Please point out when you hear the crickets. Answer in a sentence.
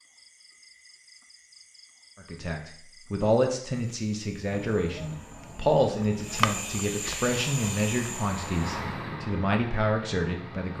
You can hear the crickets from 0.0 to 8.7 s.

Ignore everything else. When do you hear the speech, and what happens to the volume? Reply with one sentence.
The speech can be heard from 2.2 to 10.7 s, at a steady volume.